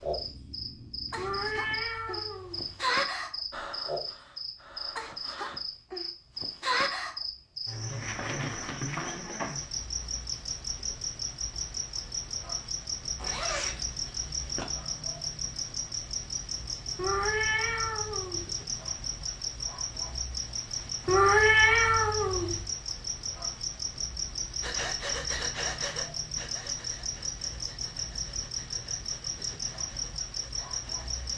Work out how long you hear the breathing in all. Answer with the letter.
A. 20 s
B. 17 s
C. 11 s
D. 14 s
C.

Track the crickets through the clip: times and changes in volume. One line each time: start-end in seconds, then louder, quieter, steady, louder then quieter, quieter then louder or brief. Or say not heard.
0.0-31.3 steady.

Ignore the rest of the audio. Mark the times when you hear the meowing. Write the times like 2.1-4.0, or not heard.
1.1-2.9, 16.9-18.6, 21.1-22.6.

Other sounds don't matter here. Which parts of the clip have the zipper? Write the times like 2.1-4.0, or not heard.
13.2-14.7.